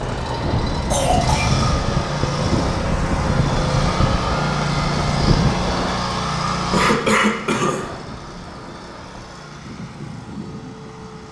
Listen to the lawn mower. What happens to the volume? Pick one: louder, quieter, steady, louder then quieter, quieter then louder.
quieter.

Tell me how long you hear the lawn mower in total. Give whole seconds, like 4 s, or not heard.
11 s.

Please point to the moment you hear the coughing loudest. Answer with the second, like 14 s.
7 s.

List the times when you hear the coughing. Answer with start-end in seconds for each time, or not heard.
0.9-1.6, 6.7-8.0.